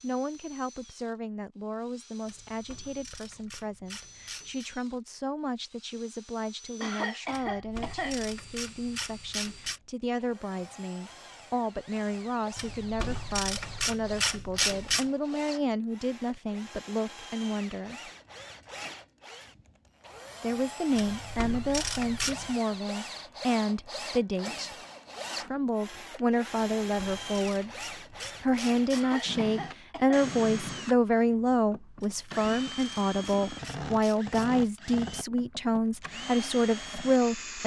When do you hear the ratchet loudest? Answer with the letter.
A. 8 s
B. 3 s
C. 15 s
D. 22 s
C.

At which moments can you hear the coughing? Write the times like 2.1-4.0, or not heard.
6.8-8.2, 28.9-30.3.